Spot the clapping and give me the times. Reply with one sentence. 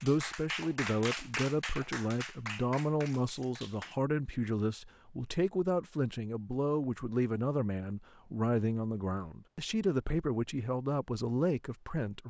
You can hear the clapping from 0.0 to 4.0 s.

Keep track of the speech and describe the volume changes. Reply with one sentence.
The volume of the speech stays about the same.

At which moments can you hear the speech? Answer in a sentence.
The speech can be heard from 0.0 to 12.2 s.